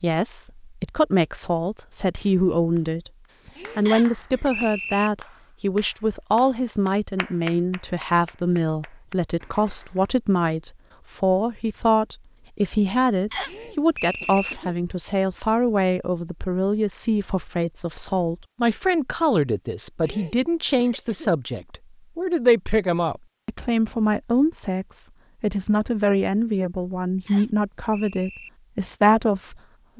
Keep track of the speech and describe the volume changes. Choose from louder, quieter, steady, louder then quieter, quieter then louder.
steady.